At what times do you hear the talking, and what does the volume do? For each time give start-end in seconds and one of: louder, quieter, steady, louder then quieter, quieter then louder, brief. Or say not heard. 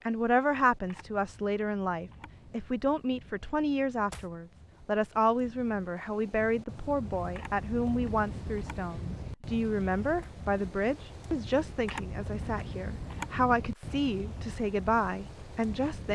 0.1-16.1 steady.